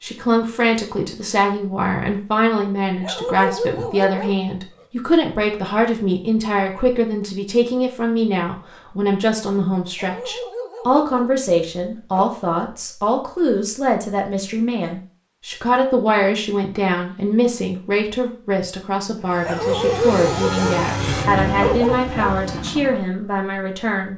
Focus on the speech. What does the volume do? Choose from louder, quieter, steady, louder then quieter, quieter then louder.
steady.